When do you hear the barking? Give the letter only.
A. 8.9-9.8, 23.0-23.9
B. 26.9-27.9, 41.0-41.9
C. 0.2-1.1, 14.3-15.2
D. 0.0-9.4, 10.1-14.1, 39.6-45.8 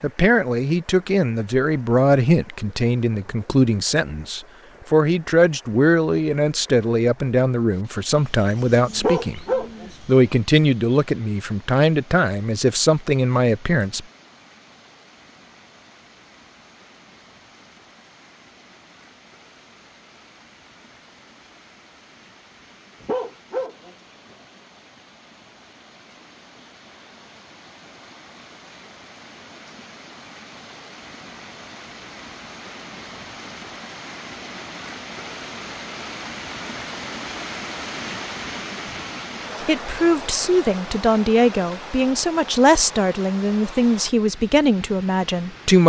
A.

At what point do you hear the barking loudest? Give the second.
9 s.